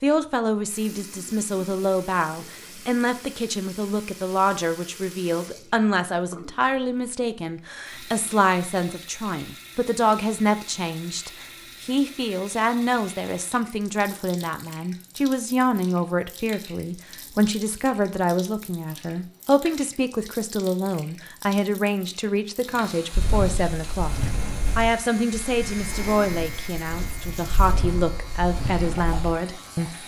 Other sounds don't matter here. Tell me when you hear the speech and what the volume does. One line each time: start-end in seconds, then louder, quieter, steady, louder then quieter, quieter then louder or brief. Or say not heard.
0.0-30.0 steady.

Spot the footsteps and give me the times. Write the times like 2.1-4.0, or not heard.
23.1-29.4.